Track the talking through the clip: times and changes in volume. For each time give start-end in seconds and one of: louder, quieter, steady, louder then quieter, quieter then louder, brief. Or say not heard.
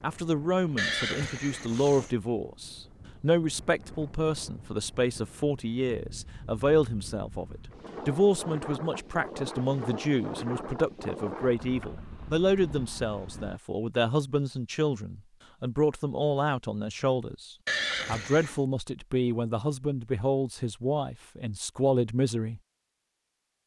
0.0-22.6 steady.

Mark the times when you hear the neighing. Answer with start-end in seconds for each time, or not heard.
0.8-2.1, 17.6-18.6.